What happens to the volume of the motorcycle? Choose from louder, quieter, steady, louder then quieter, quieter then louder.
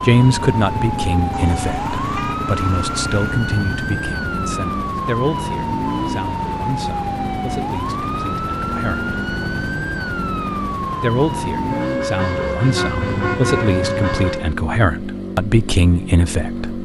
steady.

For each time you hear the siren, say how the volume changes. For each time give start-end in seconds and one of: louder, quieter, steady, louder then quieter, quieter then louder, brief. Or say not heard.
0.0-14.6 steady.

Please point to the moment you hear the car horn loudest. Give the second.
13 s.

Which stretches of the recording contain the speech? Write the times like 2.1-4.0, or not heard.
0.1-9.1, 11.0-16.8.